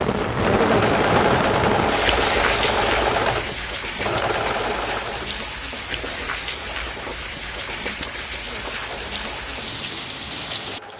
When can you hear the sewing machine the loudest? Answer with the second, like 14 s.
3 s.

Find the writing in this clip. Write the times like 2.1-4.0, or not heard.
not heard.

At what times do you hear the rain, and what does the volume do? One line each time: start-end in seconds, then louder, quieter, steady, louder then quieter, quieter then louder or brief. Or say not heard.
0.0-10.9 quieter.